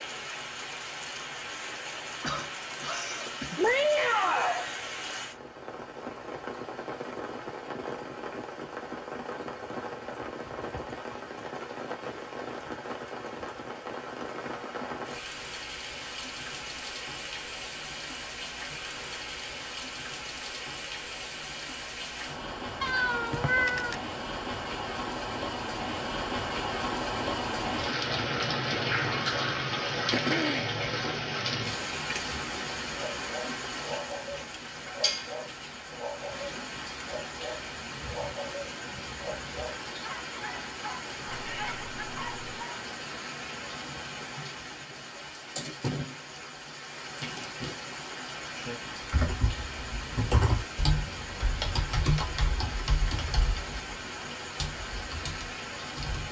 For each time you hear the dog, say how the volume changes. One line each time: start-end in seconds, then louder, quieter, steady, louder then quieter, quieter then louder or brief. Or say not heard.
33.0-42.9 steady.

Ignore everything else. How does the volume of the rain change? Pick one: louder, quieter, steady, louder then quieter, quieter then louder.
louder then quieter.